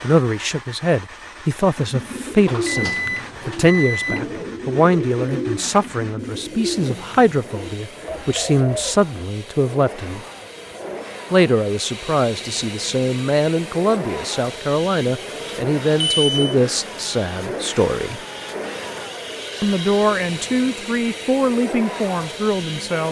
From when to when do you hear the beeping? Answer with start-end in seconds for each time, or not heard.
2.5-4.2, 16.1-16.6.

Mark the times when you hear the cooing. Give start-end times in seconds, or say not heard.
1.8-9.1.